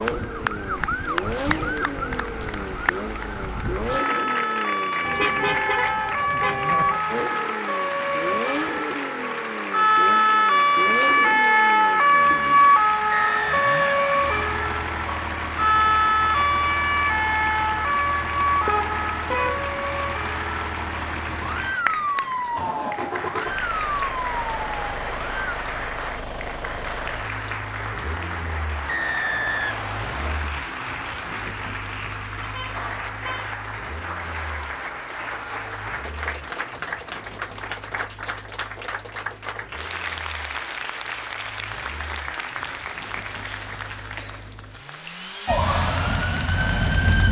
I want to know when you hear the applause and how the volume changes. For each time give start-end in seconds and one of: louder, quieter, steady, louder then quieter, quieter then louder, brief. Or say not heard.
0.0-47.2 steady.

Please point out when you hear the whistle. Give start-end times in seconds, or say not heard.
13.1-14.2, 28.9-30.4.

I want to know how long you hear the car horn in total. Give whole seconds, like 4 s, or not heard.
4 s.